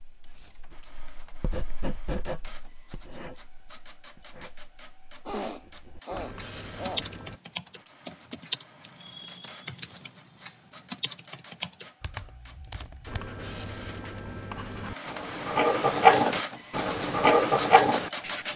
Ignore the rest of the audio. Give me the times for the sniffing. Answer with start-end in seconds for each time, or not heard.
5.2-7.1.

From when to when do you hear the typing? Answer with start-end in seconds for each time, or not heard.
6.3-13.2.